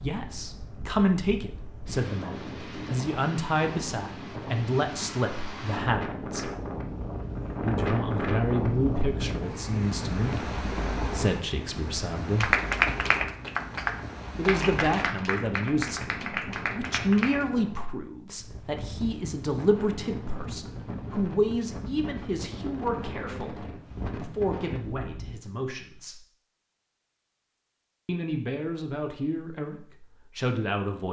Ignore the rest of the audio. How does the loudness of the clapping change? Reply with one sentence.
The loudness of the clapping goes down.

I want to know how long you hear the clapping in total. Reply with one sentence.
You can hear the clapping for 5 seconds altogether.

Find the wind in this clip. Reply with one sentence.
You can hear the wind from 0.0 to 25.4 s.